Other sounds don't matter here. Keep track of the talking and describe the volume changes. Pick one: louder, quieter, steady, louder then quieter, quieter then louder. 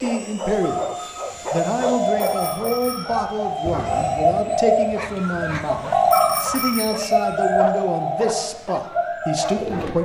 steady.